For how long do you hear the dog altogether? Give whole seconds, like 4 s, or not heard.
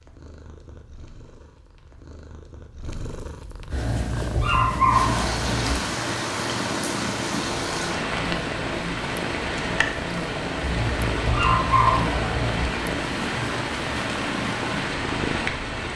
4 s.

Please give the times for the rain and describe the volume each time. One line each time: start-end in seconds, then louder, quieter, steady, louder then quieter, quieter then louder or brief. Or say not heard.
4.9-15.9 steady.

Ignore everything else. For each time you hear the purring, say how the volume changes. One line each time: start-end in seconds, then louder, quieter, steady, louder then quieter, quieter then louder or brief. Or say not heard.
0.0-15.9 louder.